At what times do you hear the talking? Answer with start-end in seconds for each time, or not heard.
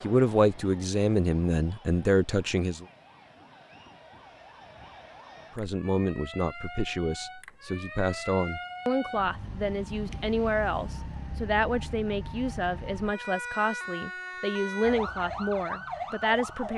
0.0-2.9, 5.5-16.7.